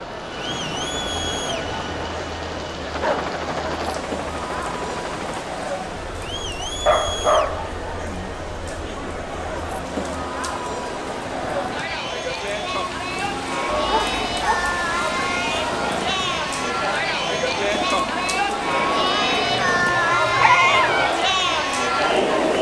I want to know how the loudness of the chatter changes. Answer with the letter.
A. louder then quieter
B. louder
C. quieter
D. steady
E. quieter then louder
B.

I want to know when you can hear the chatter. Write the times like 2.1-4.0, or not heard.
0.0-22.5.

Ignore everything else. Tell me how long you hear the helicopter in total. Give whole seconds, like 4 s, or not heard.
20 s.